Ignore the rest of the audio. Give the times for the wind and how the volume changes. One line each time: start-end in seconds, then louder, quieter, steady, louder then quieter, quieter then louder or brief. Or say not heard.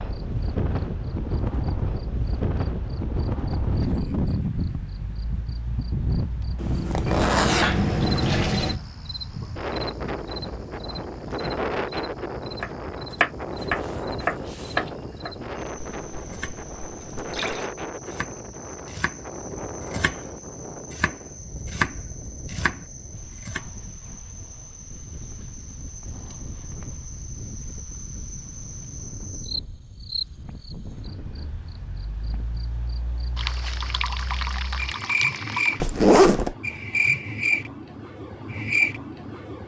0.0-32.6 quieter.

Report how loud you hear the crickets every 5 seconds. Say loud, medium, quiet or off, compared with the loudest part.
quiet, quiet, quiet, quiet, quiet, quiet, quiet, loud.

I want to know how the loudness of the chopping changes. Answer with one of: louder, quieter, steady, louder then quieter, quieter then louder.
quieter then louder.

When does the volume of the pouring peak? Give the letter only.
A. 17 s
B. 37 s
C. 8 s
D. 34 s
C.